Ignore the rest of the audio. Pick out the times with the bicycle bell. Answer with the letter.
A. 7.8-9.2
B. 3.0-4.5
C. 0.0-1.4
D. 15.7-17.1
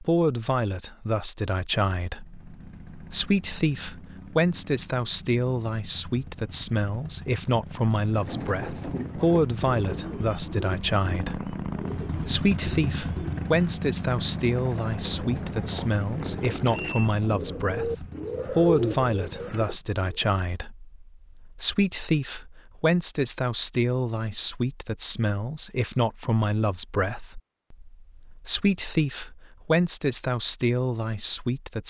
D.